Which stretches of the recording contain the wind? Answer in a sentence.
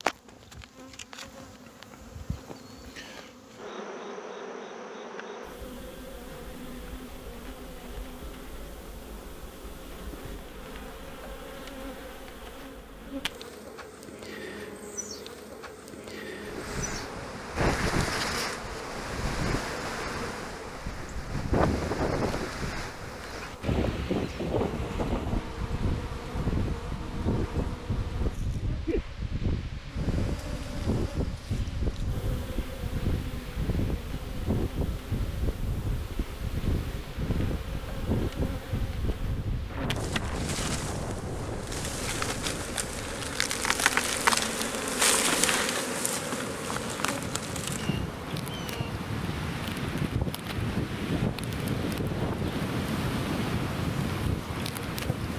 You can hear the wind from 16.4 to 55.3 s.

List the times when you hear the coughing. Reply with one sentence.
The coughing can't be heard in this clip.